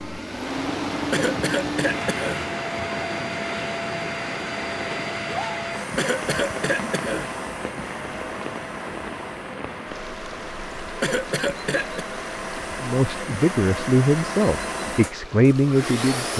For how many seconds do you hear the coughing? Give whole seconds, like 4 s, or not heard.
4 s.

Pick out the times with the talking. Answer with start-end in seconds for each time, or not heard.
12.8-16.3.